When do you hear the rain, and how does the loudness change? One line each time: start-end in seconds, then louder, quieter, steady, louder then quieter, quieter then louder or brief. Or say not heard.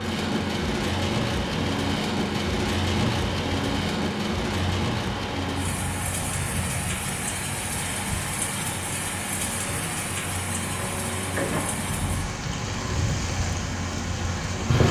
0.0-14.8 quieter.